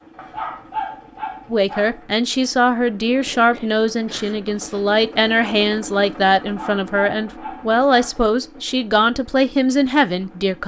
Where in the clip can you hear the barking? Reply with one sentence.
The barking can be heard from 0.1 to 2.0 s and from 6.4 to 8.2 s.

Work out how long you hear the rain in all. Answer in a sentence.
The rain can't be heard in this clip.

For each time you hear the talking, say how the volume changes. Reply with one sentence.
The talking can be heard from 1.5 to 10.6 s, at a steady volume.